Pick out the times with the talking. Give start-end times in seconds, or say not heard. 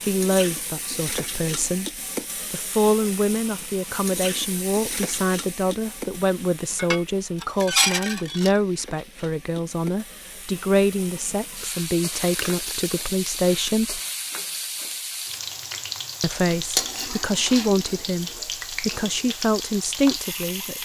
0.0-1.9, 2.5-14.0, 16.2-20.7.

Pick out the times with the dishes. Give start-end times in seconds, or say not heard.
6.8-8.6.